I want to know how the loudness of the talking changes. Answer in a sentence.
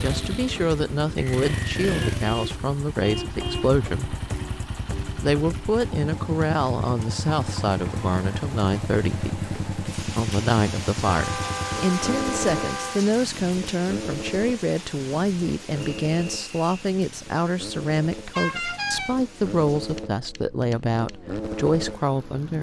The volume of the talking stays about the same.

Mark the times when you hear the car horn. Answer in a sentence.
The car horn can be heard from 2.0 to 3.8 s, from 11.1 to 13.1 s and from 18.3 to 19.1 s.